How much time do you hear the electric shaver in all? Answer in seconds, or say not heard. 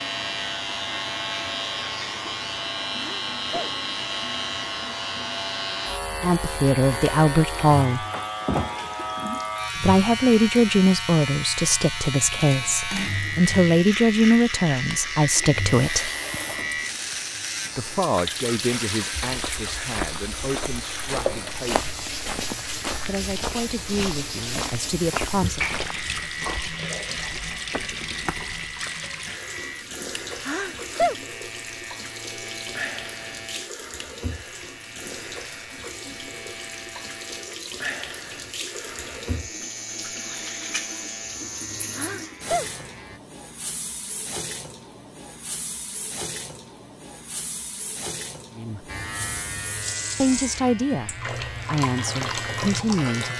48 s.